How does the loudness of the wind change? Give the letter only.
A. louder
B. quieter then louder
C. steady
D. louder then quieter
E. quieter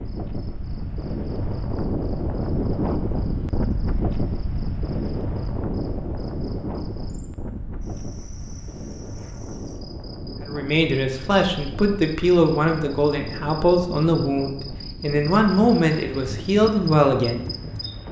E.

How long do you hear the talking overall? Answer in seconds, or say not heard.
7 s.